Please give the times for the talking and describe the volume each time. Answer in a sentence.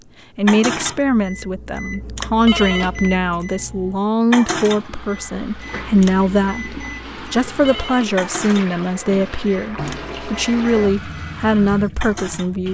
The talking can be heard from 0.3 to 12.6 s, at a steady volume.